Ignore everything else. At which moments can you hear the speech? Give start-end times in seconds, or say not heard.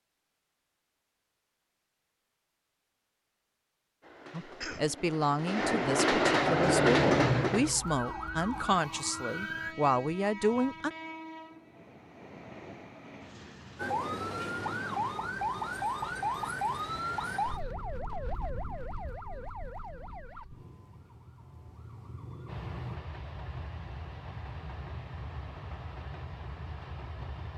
4.3-10.9.